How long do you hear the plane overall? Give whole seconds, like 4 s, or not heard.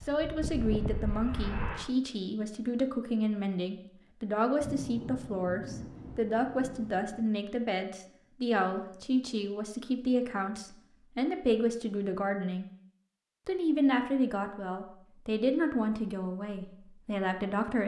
2 s.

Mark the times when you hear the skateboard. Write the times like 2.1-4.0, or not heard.
not heard.